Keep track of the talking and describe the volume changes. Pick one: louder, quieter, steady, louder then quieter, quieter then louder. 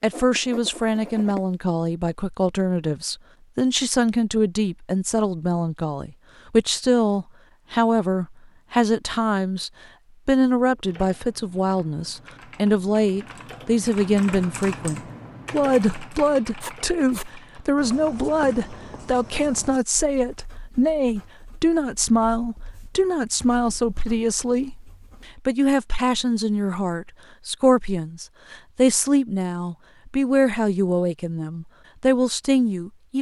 steady.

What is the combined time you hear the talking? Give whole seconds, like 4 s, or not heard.
33 s.